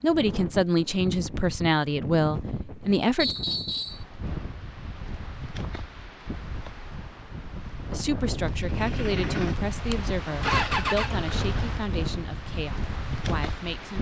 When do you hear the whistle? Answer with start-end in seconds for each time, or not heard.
3.1-4.0.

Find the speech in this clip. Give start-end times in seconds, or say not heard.
0.0-3.4, 7.8-13.9.